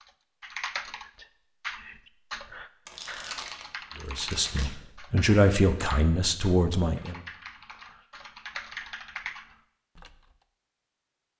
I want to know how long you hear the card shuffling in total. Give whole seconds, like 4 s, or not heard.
2 s.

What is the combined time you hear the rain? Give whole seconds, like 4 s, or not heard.
not heard.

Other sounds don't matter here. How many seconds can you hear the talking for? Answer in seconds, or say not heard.
3 s.